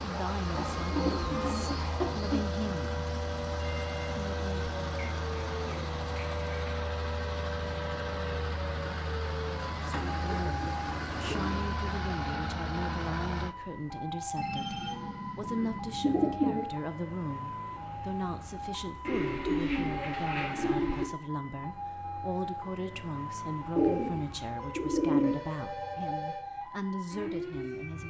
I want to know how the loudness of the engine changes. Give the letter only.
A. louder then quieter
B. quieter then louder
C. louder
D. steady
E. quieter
D.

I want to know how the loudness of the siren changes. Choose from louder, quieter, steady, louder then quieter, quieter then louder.
steady.